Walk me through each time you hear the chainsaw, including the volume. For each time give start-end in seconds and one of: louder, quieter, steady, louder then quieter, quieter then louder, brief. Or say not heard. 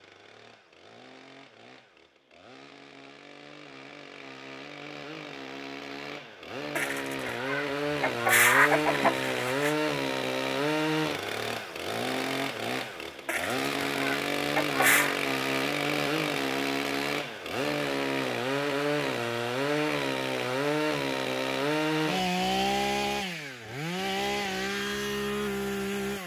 0.0-26.2 louder.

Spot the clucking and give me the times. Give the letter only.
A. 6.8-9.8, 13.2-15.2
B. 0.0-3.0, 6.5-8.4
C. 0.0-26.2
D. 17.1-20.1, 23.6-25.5
A.